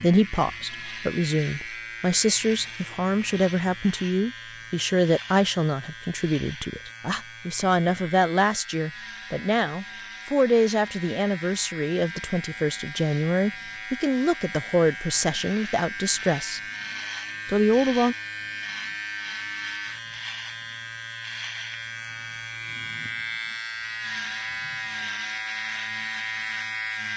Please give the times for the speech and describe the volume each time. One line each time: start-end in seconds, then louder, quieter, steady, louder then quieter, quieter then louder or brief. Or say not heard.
0.0-16.6 steady
17.4-18.1 brief.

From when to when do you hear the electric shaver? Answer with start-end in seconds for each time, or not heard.
0.0-27.1.